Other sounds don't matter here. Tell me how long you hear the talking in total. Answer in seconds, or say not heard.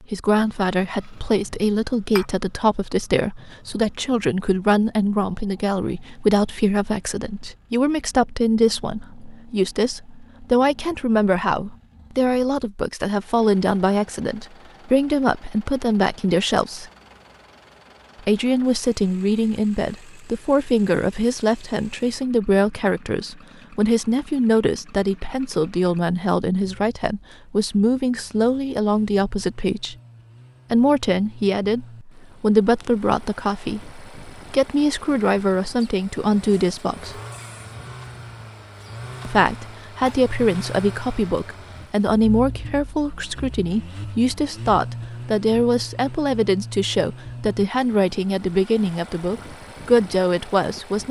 47 s.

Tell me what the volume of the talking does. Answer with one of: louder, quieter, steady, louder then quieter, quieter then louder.
steady.